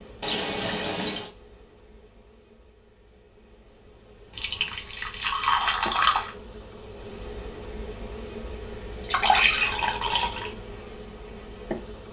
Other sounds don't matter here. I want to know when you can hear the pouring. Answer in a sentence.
You can hear the pouring from 0.2 to 1.3 s, from 4.3 to 6.3 s and from 9.0 to 10.5 s.